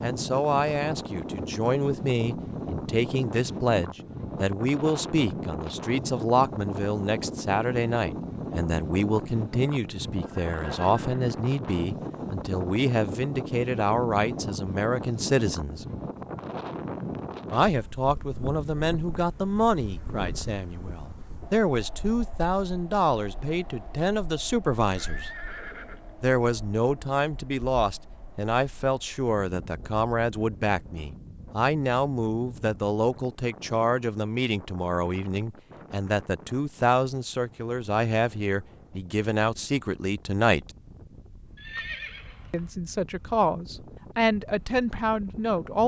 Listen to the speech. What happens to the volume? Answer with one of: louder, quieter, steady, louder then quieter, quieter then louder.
steady.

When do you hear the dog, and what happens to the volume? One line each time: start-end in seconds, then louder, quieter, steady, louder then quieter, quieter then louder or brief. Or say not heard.
not heard.